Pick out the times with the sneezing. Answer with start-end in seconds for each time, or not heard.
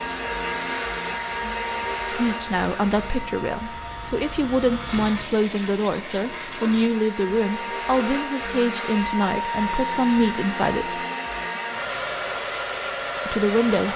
not heard.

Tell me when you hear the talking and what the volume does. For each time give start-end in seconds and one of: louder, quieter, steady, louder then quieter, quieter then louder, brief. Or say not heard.
2.1-11.0 steady
13.2-13.9 brief.